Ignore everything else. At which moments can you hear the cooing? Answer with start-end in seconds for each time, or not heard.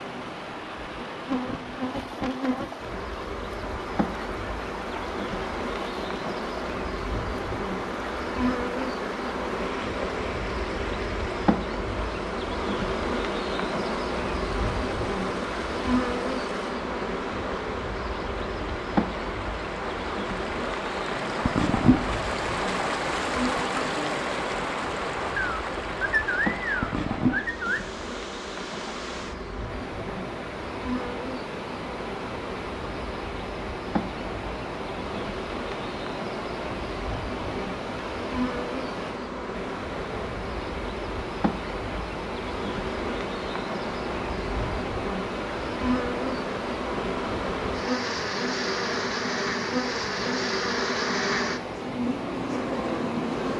25.4-27.8.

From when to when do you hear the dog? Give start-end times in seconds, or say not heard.
not heard.